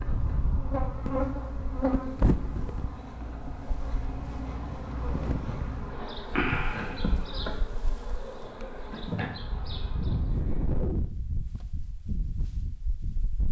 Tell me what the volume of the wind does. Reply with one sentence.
The loudness of the wind goes down, then up.